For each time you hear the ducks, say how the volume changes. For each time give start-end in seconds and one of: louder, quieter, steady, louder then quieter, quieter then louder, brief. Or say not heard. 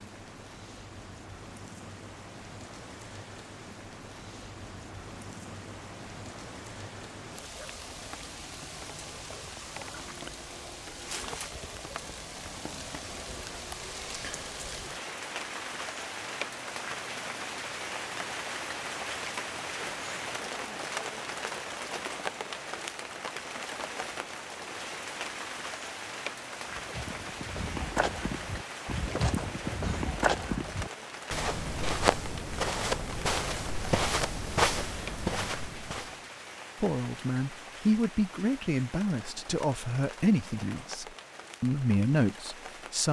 not heard.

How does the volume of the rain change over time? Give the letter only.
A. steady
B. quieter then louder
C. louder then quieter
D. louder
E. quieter
C.